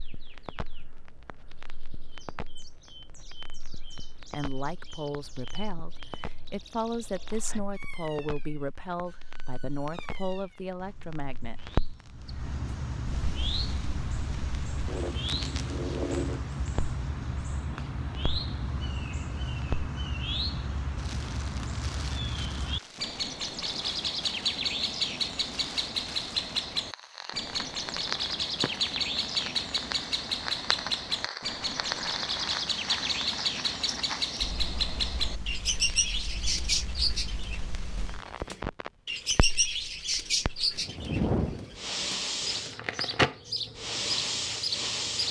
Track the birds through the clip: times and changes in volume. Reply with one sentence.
The birds can be heard from 0.0 to 45.2 s, getting louder.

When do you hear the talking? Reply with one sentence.
You can hear the talking from 4.3 to 11.6 s.